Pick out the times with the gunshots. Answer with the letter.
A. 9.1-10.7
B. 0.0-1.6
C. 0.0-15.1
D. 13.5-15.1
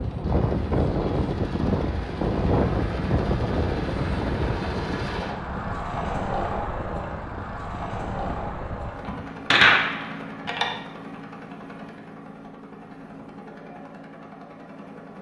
A.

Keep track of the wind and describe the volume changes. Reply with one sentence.
The volume of the wind goes down.